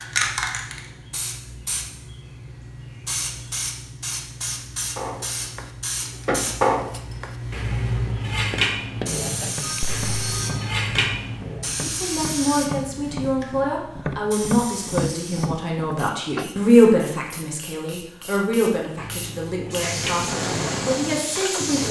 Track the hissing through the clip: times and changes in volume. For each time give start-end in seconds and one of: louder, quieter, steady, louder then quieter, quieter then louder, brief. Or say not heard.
0.0-21.8 quieter then louder.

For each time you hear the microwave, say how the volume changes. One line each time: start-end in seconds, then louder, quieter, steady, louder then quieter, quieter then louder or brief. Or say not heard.
not heard.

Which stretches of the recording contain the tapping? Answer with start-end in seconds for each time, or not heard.
8.1-16.5.